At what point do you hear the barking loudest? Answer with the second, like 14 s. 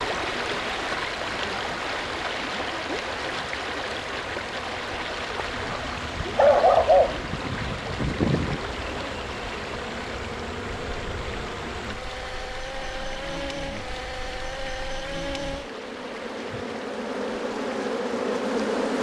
7 s.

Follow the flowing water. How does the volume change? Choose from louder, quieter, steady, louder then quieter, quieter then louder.
quieter.